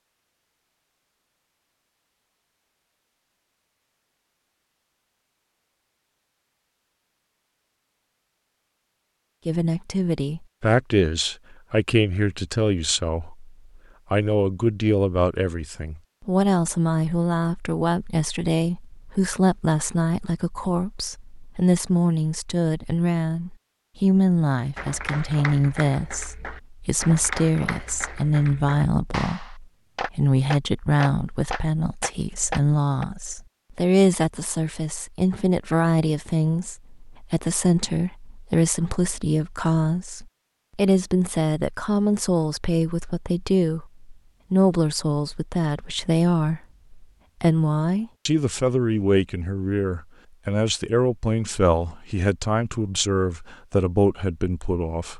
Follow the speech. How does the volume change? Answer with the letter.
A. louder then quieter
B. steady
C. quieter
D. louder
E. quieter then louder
B.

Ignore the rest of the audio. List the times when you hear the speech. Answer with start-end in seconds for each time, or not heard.
9.4-55.1.